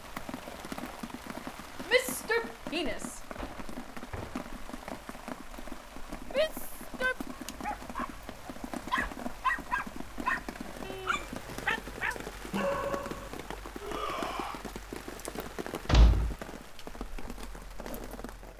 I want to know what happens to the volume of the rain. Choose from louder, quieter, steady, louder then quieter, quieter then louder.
steady.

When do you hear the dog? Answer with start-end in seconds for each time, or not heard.
7.5-13.5.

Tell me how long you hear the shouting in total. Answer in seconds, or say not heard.
3 s.